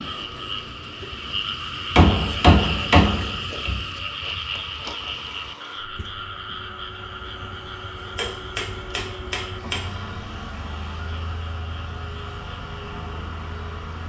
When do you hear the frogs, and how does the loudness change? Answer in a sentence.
The frogs can be heard from 0.0 to 14.0 s, getting quieter.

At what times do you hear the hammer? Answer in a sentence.
The hammer can be heard from 1.9 to 3.9 s and from 8.2 to 9.8 s.